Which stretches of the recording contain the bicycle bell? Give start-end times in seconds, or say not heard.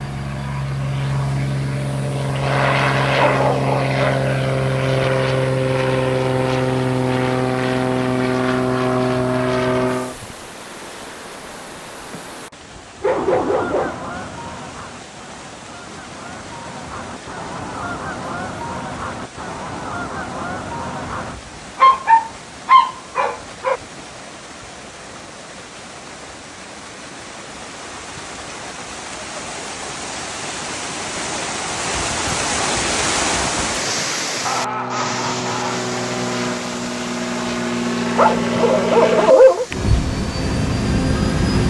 not heard.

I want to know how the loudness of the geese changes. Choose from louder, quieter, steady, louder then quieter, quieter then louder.
quieter then louder.